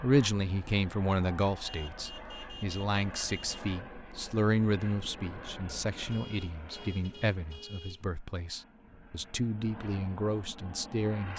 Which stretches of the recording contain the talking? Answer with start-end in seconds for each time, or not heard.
0.0-11.3.